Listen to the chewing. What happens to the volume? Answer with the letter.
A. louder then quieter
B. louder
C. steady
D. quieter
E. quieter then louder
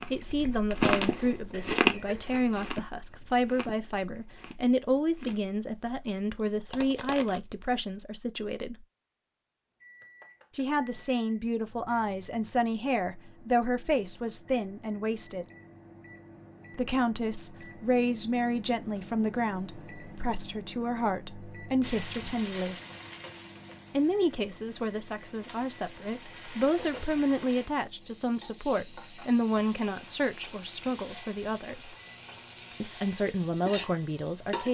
E.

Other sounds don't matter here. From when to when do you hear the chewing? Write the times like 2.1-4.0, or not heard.
0.0-8.0.